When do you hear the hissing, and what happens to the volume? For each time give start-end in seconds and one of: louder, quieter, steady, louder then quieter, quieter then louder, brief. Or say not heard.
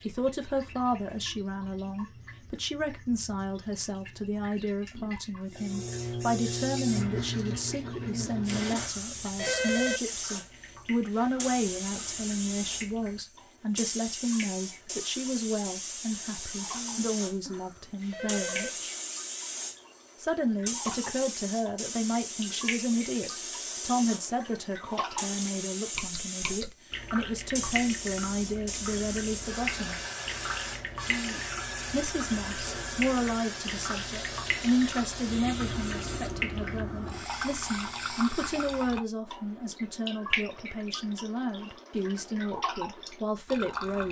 5.5-39.0 steady.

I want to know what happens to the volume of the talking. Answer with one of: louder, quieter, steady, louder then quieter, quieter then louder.
steady.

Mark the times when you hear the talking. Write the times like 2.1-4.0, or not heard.
0.0-18.9, 20.2-30.0, 31.9-44.0.